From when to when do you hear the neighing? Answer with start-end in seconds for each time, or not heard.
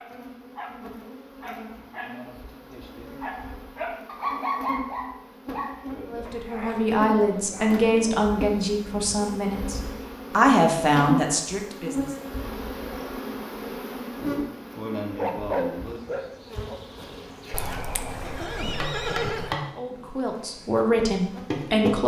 17.5-19.6.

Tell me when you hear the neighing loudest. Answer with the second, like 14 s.
19 s.